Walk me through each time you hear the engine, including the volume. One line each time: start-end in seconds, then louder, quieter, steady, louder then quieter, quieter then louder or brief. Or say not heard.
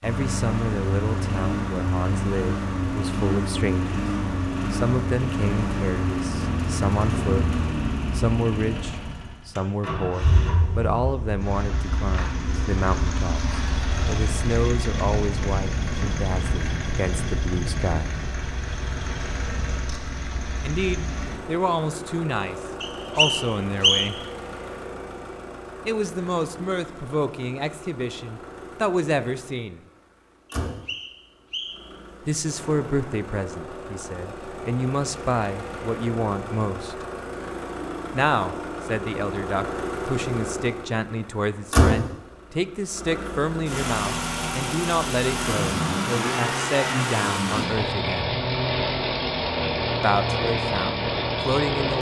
0.0-51.9 quieter then louder.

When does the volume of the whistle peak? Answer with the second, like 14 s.
24 s.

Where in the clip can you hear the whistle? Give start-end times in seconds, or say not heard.
22.8-24.2, 30.6-31.9.